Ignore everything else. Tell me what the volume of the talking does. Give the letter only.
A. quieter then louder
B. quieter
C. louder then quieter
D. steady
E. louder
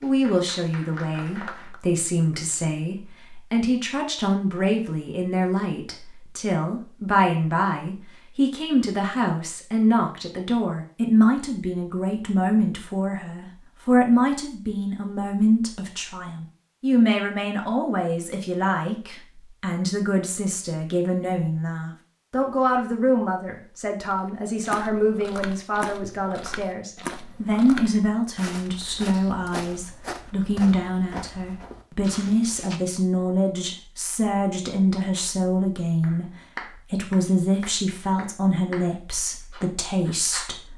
D.